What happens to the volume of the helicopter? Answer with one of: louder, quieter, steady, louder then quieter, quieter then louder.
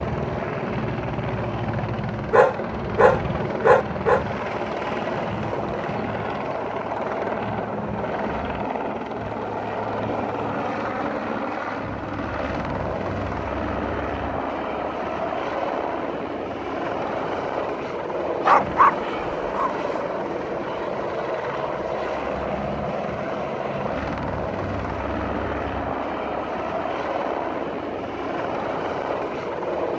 steady.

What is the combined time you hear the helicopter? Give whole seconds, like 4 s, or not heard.
30 s.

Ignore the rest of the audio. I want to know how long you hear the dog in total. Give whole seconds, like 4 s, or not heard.
3 s.